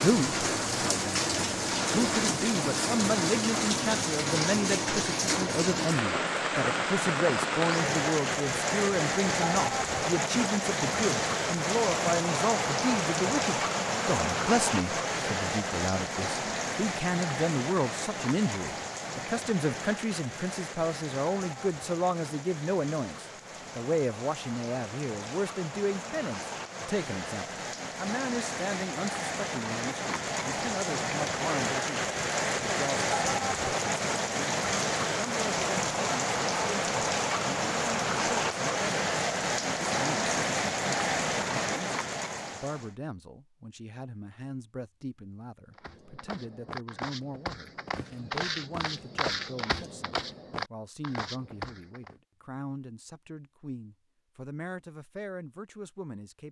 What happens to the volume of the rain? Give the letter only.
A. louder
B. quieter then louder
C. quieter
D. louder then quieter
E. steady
B.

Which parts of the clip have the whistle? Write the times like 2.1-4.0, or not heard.
not heard.